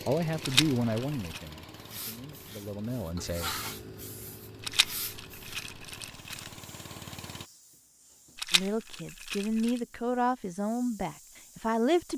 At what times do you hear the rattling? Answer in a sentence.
The rattling can be heard from 0.4 to 1.4 s, from 4.6 to 6.5 s and from 8.3 to 9.8 s.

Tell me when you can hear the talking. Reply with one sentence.
The talking can be heard from 0.1 to 3.5 s and from 8.5 to 12.1 s.